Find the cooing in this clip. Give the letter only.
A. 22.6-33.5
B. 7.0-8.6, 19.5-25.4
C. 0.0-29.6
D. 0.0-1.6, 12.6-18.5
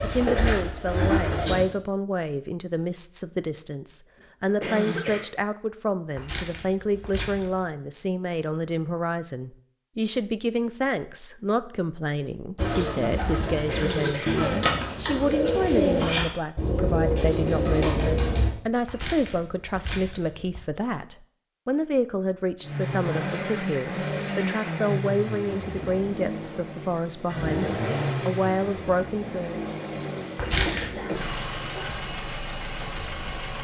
D.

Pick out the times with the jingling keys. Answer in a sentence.
The jingling keys can be heard from 6.2 to 7.4 s, from 19.0 to 20.1 s and from 30.4 to 30.9 s.